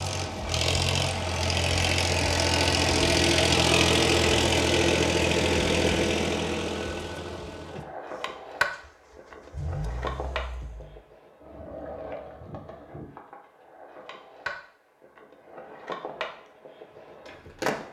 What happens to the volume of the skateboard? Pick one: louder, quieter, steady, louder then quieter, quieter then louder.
quieter.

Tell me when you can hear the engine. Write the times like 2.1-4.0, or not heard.
0.0-11.0.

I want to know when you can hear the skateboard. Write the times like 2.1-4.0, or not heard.
7.7-17.8.